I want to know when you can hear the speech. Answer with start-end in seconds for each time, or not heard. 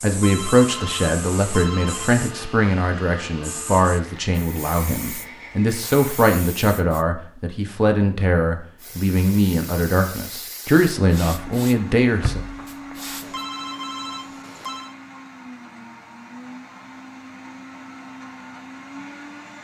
0.0-12.4.